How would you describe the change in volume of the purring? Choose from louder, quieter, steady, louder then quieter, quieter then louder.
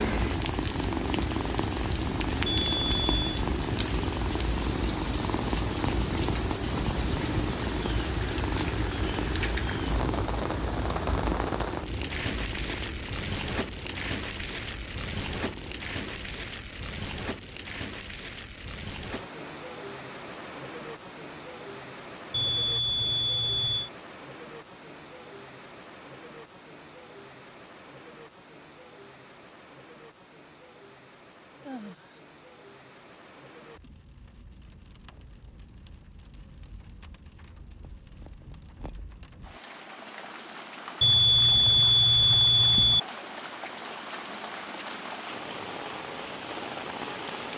quieter.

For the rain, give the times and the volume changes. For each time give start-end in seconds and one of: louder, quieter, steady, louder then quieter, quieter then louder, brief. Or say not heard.
0.0-47.5 quieter then louder.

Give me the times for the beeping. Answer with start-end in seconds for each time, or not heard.
2.5-3.2, 22.3-23.9, 41.0-43.0.